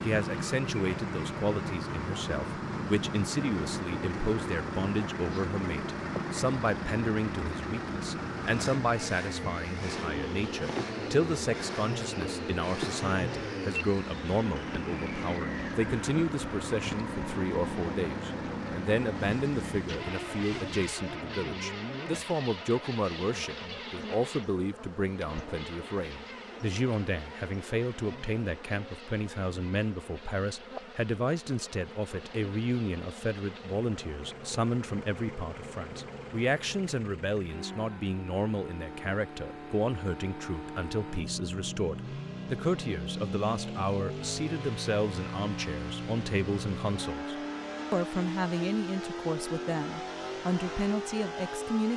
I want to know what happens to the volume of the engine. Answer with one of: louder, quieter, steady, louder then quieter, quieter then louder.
quieter then louder.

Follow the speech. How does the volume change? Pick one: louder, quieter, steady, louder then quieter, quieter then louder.
steady.